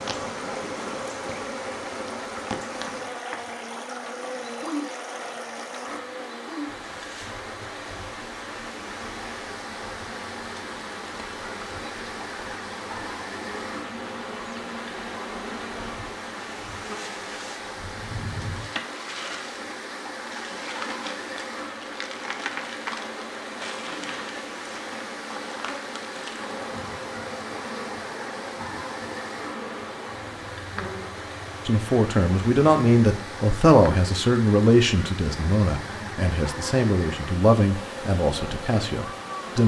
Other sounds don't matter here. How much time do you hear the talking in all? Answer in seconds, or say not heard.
8 s.